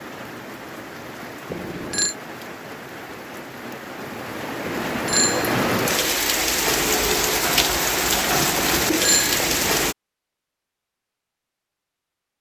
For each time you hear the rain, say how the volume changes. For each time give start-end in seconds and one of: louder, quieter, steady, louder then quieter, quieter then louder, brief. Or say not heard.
0.0-9.9 louder.